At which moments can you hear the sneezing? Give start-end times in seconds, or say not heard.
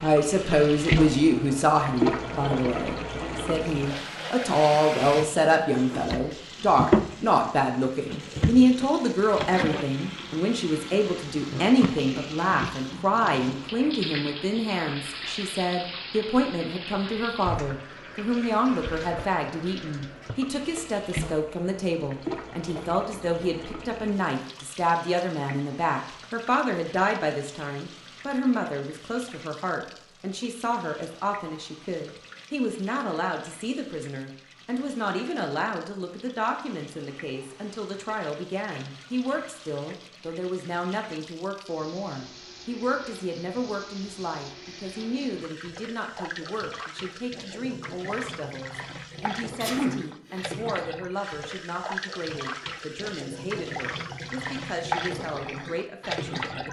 49.6-50.4.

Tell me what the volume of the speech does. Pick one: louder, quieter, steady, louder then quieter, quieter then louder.
quieter.